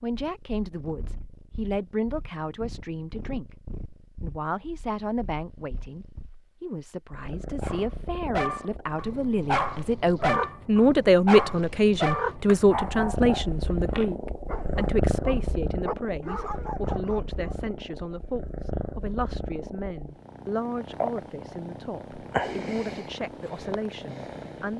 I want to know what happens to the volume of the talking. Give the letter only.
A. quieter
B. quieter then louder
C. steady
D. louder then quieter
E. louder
D.